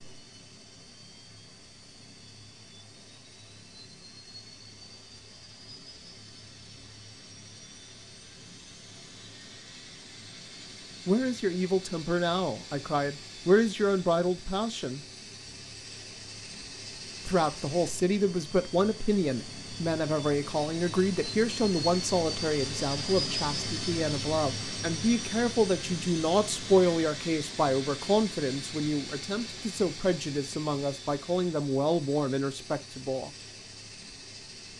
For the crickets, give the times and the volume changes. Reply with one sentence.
You can't hear the crickets here.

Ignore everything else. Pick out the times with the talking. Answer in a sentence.
The talking can be heard from 11.1 to 15.0 s and from 17.2 to 33.3 s.